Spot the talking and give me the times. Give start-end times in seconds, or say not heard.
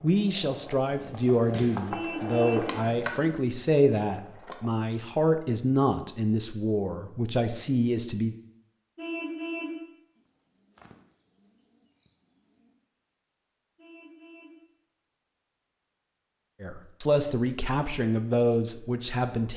0.0-8.3, 16.6-19.5.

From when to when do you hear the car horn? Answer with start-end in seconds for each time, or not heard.
1.9-2.7, 8.9-9.8, 13.8-14.6.